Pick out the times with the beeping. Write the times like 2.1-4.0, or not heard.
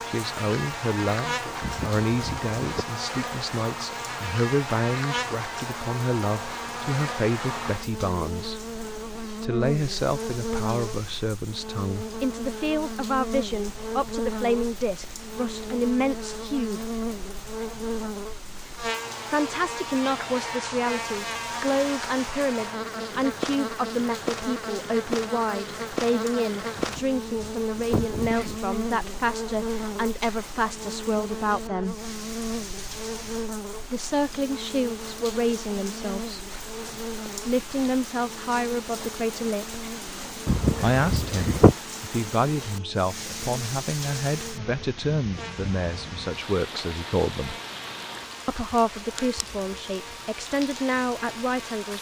not heard.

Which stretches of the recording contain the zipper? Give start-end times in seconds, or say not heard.
1.6-2.9, 26.8-28.6, 40.5-41.8.